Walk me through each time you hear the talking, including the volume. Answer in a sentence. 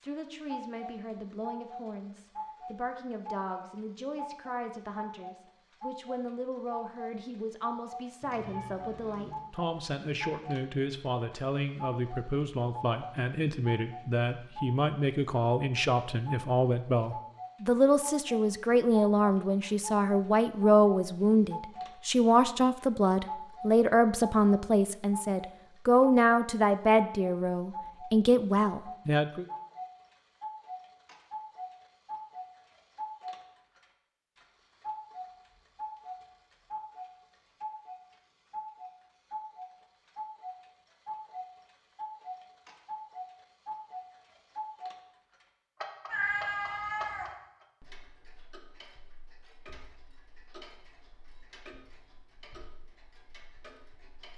The talking can be heard from 0.0 to 29.4 s, getting louder.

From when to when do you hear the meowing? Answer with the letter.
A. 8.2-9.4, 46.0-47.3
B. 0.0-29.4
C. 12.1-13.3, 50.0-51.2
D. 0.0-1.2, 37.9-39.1
A.